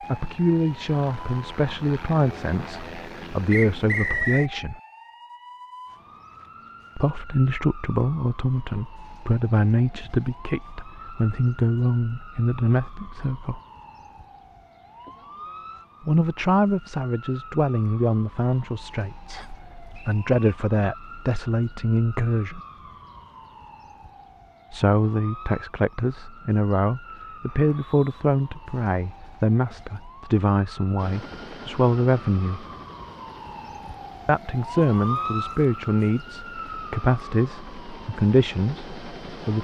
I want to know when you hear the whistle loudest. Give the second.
4 s.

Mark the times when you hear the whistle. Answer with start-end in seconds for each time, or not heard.
3.5-4.5, 19.3-20.3, 27.4-28.2.